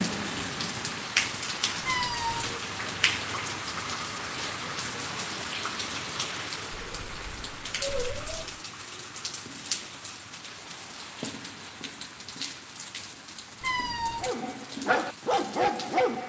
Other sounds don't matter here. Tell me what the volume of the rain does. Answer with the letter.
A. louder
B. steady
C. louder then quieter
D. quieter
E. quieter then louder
D.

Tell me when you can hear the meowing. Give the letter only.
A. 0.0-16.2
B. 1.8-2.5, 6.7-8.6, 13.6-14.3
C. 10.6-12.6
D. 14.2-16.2
B.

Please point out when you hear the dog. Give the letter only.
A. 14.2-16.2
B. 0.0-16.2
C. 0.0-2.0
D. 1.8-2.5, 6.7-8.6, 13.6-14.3
A.